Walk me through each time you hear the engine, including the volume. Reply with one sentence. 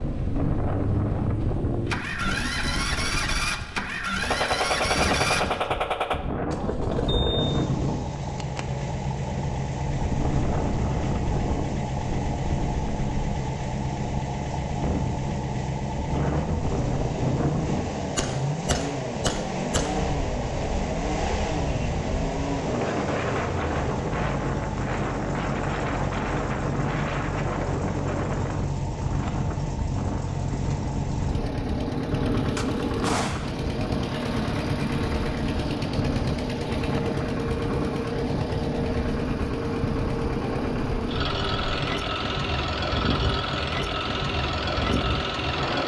You can hear the engine from 0.0 to 45.8 s, at a steady volume.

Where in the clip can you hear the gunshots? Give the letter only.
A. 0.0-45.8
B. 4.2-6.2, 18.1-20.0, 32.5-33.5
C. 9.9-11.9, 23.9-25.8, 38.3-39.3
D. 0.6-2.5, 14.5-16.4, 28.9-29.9
B.